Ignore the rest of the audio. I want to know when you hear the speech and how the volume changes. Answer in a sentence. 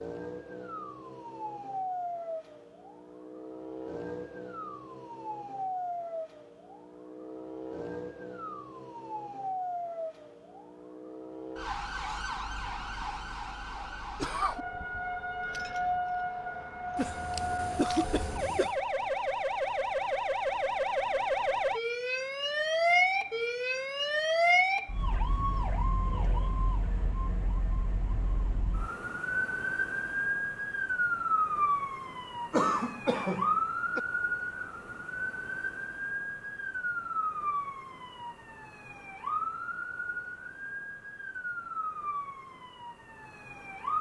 You can't hear the speech here.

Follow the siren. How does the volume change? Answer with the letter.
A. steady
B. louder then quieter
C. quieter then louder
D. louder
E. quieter
B.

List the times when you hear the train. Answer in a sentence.
The train can't be heard in this clip.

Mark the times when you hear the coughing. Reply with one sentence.
The coughing can be heard from 16.9 to 18.8 s and from 32.5 to 34.0 s.